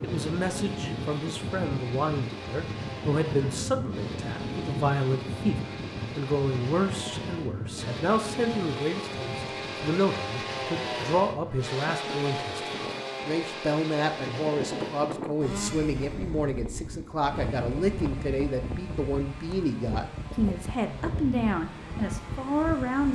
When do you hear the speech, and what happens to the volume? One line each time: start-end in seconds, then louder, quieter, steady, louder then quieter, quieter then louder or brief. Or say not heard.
0.0-23.1 steady.